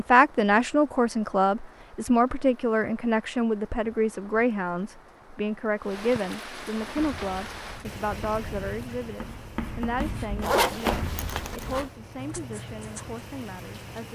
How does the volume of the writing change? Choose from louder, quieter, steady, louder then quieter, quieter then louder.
louder then quieter.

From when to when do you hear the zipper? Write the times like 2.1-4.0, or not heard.
10.4-11.9.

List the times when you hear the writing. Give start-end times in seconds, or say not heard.
6.8-13.2.